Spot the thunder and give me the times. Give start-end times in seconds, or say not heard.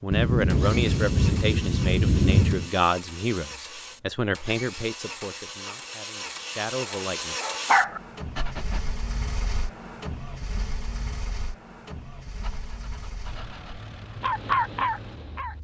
0.1-2.7.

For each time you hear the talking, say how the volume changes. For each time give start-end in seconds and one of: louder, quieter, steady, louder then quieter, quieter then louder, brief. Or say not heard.
0.0-7.3 quieter.